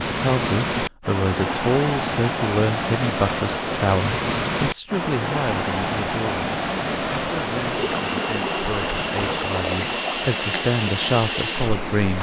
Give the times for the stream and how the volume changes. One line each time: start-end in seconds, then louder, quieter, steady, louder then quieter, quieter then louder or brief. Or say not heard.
0.0-12.1 steady.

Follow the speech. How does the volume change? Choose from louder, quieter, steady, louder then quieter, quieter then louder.
quieter then louder.